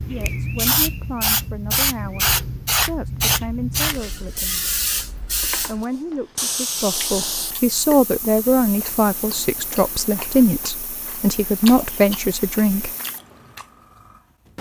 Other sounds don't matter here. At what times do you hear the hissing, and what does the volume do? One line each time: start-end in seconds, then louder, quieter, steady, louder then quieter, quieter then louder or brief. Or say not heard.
0.0-14.5 quieter.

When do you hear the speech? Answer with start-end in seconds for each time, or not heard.
0.1-4.7, 5.7-12.9.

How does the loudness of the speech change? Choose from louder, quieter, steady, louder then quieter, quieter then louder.
louder.